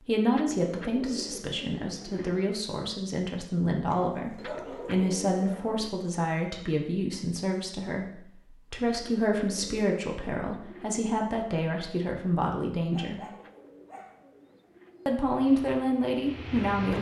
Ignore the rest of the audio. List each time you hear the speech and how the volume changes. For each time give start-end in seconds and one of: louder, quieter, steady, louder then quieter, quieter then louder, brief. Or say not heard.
0.0-13.2 steady
15.1-16.9 brief.